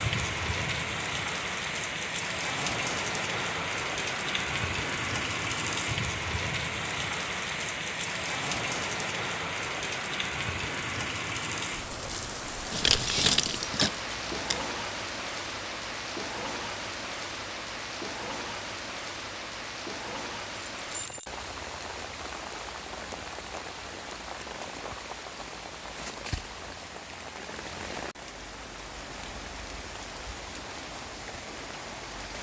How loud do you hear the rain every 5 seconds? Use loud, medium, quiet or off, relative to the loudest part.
loud, loud, loud, medium, medium, medium, medium.